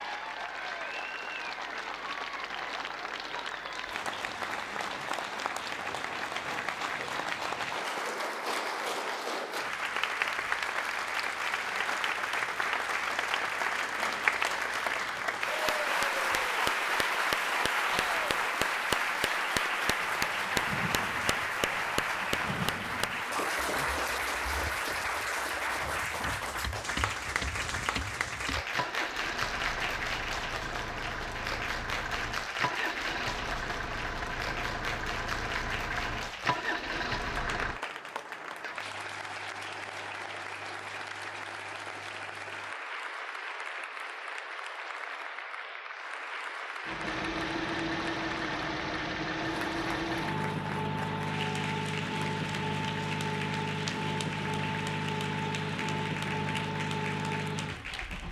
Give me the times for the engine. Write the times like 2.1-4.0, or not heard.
19.9-37.8, 46.9-58.2.